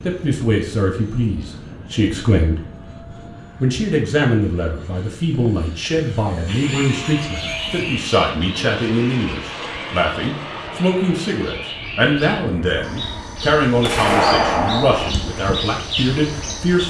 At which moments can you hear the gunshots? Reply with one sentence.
You can hear the gunshots from 13.8 to 15.1 s.